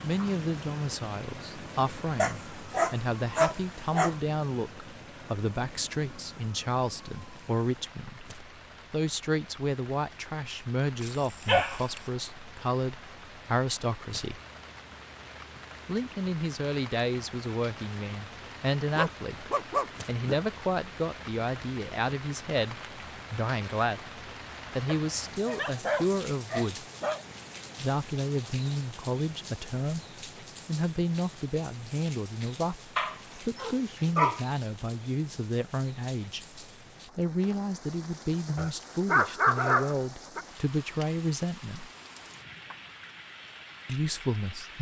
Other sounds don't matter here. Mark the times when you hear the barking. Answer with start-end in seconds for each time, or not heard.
2.1-4.2, 11.0-12.0, 18.9-20.4, 24.9-27.2, 33.0-34.5, 38.5-40.5.